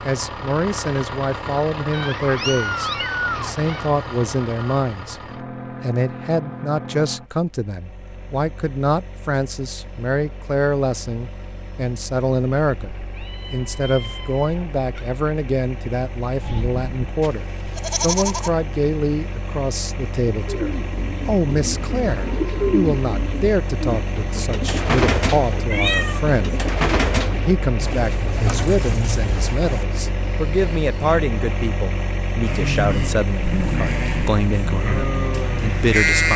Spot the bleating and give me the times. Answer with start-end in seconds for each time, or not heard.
16.4-18.5, 32.4-36.3.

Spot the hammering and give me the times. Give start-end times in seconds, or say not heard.
not heard.